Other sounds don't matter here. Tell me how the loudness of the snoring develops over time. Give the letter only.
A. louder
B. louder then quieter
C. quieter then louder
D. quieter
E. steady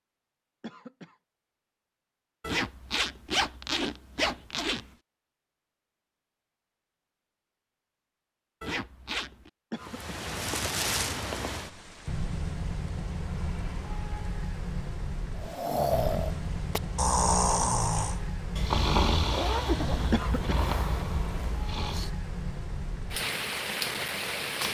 D.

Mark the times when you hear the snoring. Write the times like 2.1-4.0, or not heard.
15.3-22.1.